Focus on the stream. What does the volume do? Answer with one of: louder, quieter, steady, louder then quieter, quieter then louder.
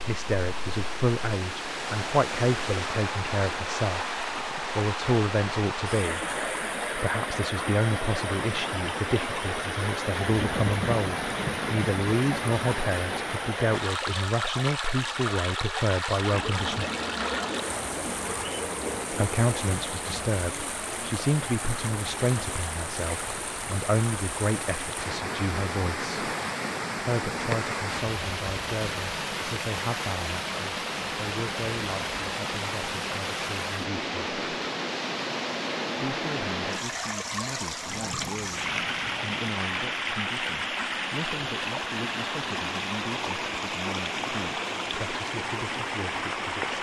steady.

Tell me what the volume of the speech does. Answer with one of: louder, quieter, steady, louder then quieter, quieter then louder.
quieter.